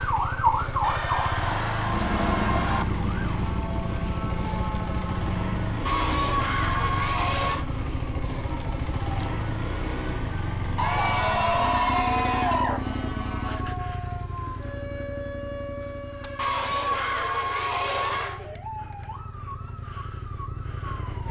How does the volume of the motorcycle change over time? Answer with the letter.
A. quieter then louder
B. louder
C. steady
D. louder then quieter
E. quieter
E.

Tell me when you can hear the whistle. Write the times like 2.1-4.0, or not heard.
not heard.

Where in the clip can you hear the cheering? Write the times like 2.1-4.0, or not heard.
0.8-2.9, 5.8-7.7, 10.8-12.8, 16.4-18.4.